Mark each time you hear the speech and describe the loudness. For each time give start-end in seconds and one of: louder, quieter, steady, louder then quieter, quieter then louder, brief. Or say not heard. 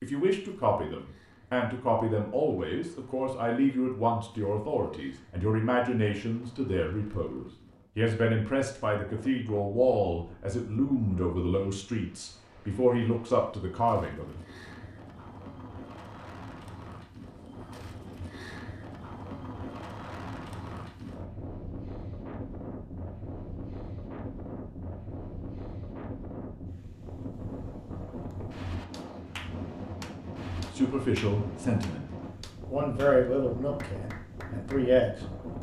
0.0-14.3 steady
30.7-32.0 brief
32.7-35.5 brief.